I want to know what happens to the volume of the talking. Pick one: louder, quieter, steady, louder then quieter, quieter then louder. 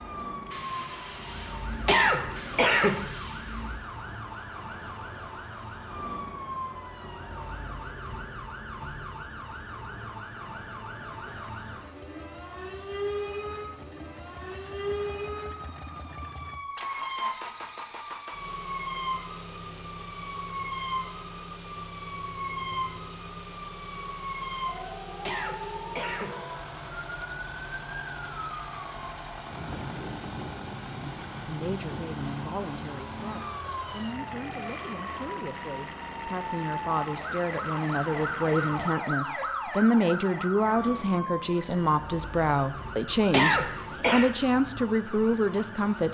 louder.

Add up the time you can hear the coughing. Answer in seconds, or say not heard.
3 s.